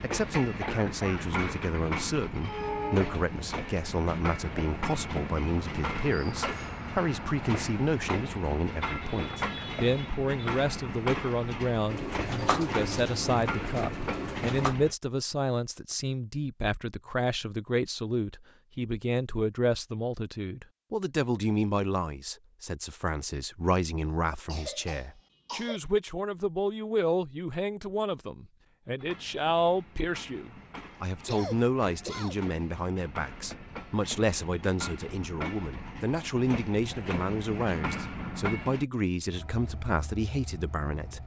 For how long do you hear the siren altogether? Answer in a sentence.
You can't hear the siren here.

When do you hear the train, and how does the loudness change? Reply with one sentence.
The train can be heard from 0.0 to 14.9 s, at a steady volume; and from 28.9 to 41.2 s, getting louder then quieter.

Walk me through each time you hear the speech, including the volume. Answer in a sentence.
You can hear the speech from 0.0 to 41.2 s, at a steady volume.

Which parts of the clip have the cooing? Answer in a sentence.
You can hear the cooing from 11.8 to 14.8 s.